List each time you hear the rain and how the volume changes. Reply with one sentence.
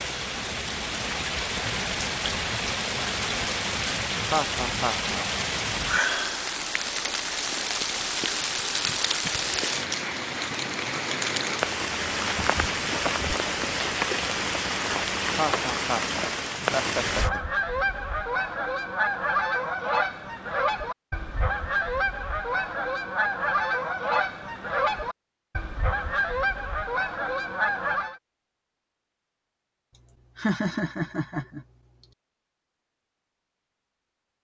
You can hear the rain from 0.0 to 17.3 s, at a steady volume.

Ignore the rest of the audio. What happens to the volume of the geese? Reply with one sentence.
The loudness of the geese stays about the same.